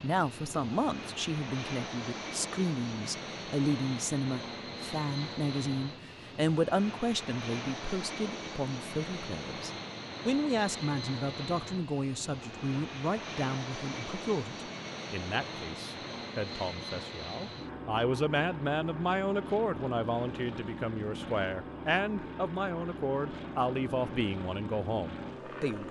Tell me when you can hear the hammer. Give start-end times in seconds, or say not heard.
not heard.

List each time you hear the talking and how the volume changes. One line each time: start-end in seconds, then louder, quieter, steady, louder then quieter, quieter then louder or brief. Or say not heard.
0.0-25.8 steady.